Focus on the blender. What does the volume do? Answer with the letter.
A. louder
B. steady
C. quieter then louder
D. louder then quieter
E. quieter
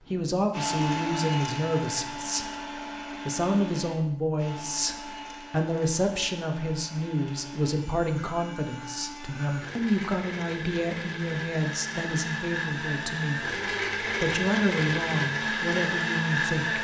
C.